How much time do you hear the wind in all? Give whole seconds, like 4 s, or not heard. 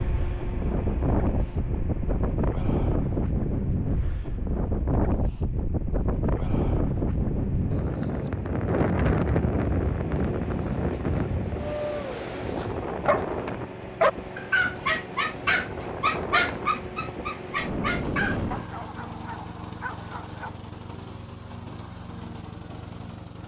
19 s.